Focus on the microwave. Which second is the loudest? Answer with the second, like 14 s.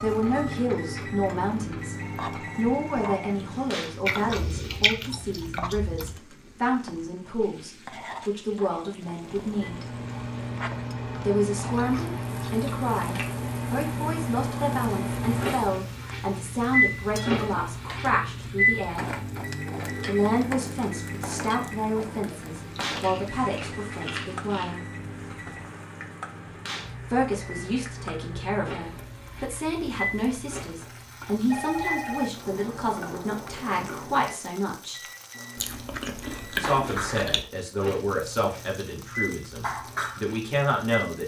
17 s.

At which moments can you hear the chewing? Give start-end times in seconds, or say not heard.
4.0-6.2, 11.8-13.3, 22.2-24.8, 35.5-37.5.